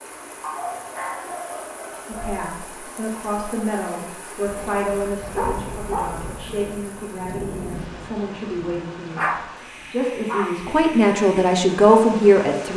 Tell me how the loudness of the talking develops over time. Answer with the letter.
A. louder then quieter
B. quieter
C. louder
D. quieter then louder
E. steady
C.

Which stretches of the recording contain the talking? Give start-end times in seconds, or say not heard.
2.0-12.7.